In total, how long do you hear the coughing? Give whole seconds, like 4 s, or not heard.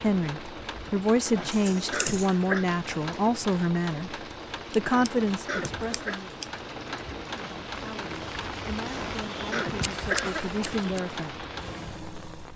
4 s.